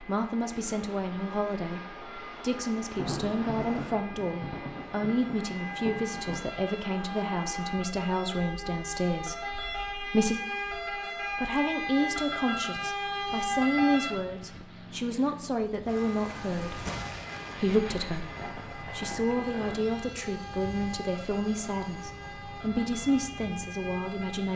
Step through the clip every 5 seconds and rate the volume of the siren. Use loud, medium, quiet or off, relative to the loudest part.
quiet, medium, loud, medium, medium.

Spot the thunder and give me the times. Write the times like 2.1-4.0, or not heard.
2.8-6.6, 15.8-19.9.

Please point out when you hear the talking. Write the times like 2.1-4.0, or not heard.
0.0-10.4, 11.3-16.9, 17.6-24.5.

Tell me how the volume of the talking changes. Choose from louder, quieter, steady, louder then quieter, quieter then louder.
steady.